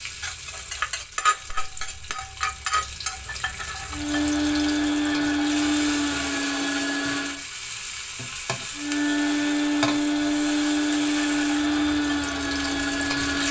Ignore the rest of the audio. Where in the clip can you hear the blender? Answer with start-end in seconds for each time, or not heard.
3.9-7.5, 8.8-13.4.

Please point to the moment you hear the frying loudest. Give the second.
1 s.